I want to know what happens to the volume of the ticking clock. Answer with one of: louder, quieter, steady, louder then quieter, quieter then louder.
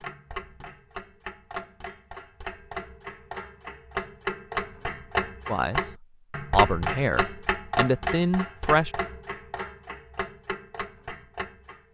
louder then quieter.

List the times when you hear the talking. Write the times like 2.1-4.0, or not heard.
5.5-8.9.